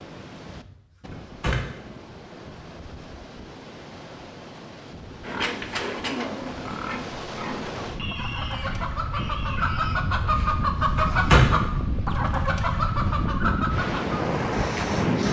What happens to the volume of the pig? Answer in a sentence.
The volume of the pig goes down.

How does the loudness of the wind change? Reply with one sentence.
The loudness of the wind goes up.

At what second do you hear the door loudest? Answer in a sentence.
The loudest moment of the door is at 11 seconds.